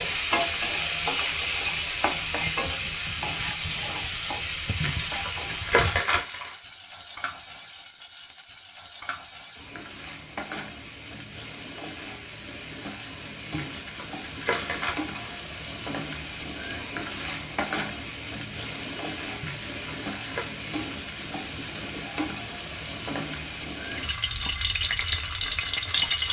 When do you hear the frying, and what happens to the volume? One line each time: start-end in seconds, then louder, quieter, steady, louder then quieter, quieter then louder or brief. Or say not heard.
0.0-26.2 quieter then louder.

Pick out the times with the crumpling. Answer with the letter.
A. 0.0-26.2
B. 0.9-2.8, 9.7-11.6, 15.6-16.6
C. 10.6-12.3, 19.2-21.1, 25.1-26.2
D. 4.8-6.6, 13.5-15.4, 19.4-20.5
D.